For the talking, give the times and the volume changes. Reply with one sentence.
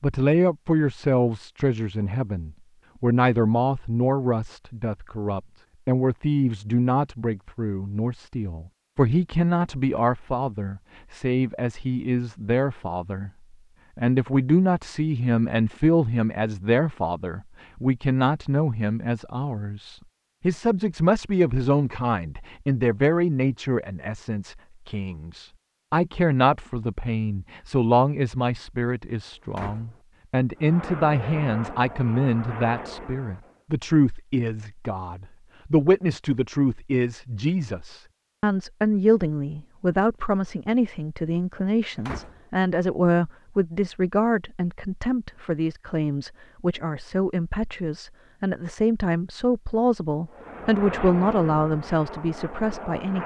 The talking can be heard from 0.0 to 13.3 s, at a steady volume; and from 13.9 to 53.2 s, at a steady volume.